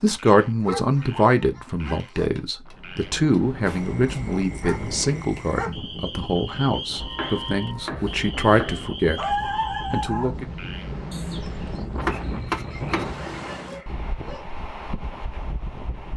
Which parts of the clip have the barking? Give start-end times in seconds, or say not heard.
0.2-2.2, 4.1-5.8, 9.2-10.4, 12.7-14.5.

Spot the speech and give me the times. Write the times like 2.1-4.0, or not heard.
0.0-10.4.